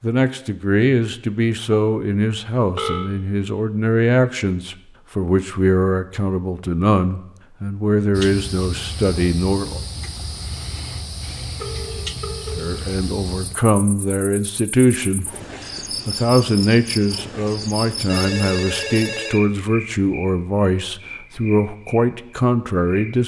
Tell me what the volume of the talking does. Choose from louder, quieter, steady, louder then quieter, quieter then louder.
steady.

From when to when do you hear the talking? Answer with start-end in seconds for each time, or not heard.
0.0-9.8, 12.6-23.2.